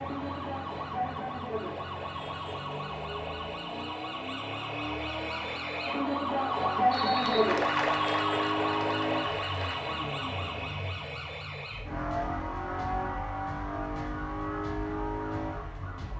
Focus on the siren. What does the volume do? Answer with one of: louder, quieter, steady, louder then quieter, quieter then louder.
louder then quieter.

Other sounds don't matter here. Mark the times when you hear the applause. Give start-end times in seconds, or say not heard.
6.8-9.9.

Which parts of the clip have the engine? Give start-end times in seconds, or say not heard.
0.0-16.1.